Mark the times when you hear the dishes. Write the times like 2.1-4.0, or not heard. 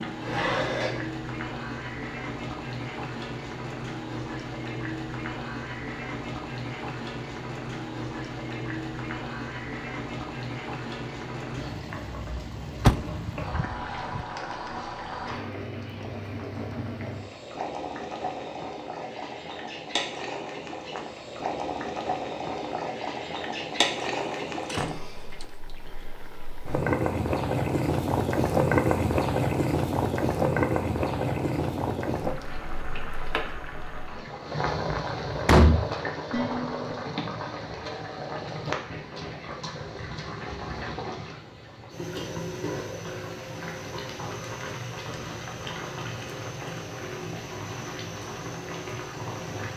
0.2-1.0, 36.3-36.8.